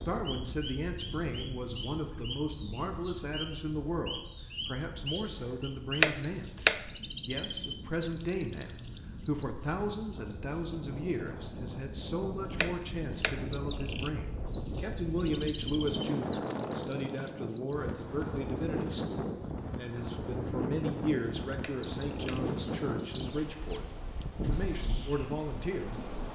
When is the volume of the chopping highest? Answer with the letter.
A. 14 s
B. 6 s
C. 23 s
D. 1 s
B.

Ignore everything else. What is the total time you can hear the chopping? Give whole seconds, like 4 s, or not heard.
3 s.